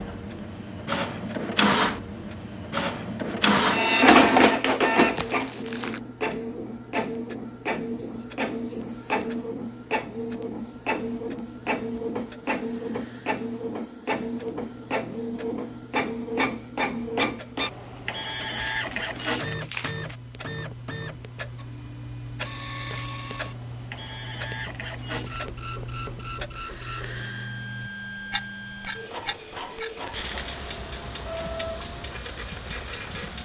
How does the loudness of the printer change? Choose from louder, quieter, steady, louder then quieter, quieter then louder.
quieter.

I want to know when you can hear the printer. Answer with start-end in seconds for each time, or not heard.
0.0-33.3.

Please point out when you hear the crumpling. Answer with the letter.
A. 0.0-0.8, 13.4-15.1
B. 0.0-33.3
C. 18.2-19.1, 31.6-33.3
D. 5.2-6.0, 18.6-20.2
D.